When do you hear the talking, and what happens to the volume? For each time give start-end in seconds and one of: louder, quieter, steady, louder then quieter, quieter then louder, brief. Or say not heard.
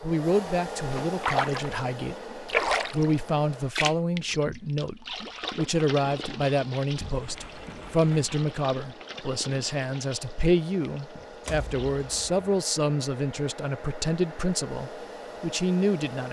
0.0-16.2 steady.